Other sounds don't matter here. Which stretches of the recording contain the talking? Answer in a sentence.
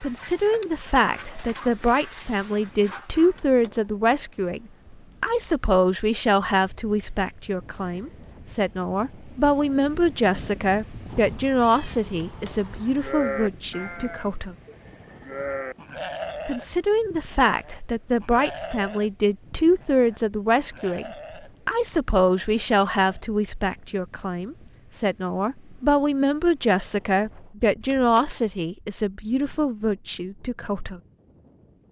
You can hear the talking from 0.0 to 14.6 s and from 16.4 to 31.0 s.